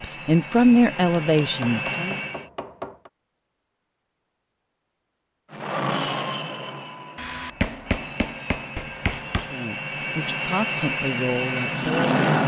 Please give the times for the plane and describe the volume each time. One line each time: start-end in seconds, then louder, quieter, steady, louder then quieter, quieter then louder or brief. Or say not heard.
0.0-2.5 brief
5.5-12.4 quieter then louder.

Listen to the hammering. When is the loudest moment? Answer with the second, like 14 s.
8 s.